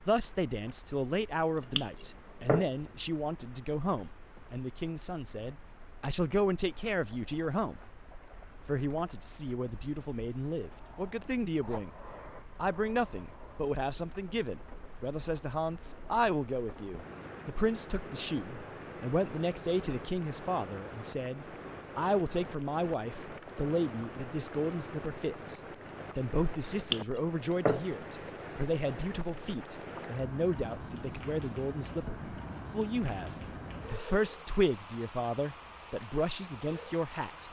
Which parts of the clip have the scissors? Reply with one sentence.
You can hear the scissors from 1.6 to 2.7 s and from 26.8 to 27.9 s.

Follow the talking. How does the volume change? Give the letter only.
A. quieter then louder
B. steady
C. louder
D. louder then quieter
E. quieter
B.